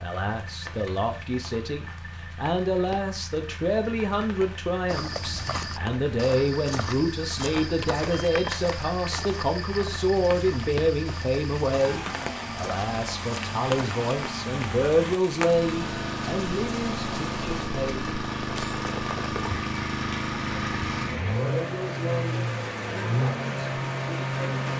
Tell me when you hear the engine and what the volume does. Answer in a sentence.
You can hear the engine from 0.0 to 24.7 s, getting louder.